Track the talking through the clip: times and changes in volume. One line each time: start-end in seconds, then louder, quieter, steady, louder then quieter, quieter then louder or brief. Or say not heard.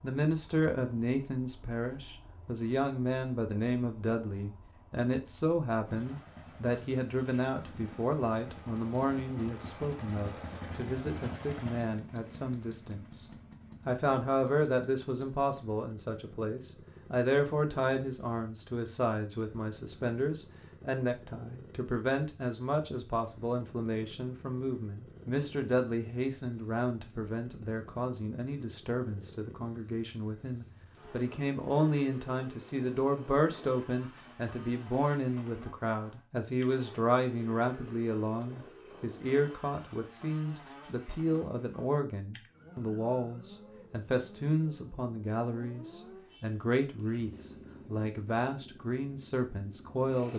0.0-50.3 steady.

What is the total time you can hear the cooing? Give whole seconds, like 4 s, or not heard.
not heard.